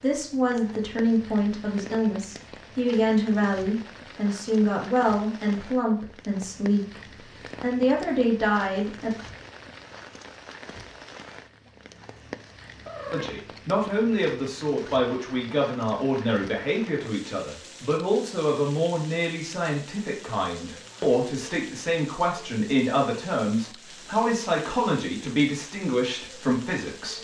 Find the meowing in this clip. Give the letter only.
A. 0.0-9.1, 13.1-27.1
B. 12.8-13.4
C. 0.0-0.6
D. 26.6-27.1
B.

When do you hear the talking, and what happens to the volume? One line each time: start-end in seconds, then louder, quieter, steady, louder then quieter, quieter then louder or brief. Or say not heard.
0.0-9.1 steady
13.1-27.1 steady.